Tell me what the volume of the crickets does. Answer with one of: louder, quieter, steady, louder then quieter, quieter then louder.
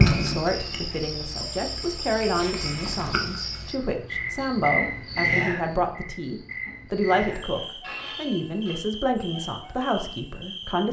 louder then quieter.